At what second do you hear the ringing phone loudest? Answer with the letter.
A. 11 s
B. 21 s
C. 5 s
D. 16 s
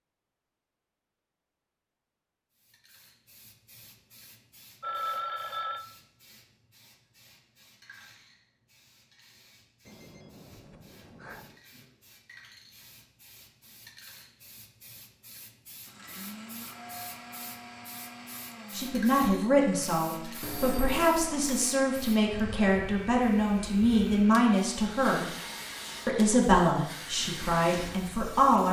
C.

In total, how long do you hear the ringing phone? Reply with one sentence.
You can hear the ringing phone for 4 seconds altogether.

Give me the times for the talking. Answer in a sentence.
The talking can be heard from 18.8 to 25.2 s and from 26.1 to 28.6 s.